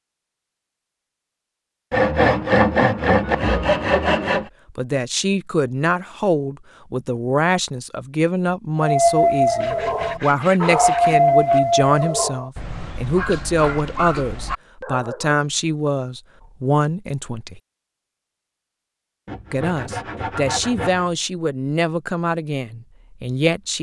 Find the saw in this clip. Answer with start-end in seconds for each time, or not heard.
1.9-4.5, 9.6-11.6, 19.2-21.1.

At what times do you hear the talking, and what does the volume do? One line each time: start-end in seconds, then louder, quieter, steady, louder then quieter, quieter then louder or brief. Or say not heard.
4.7-17.6 steady
19.5-23.7 quieter.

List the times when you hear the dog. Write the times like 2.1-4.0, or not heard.
8.8-15.3.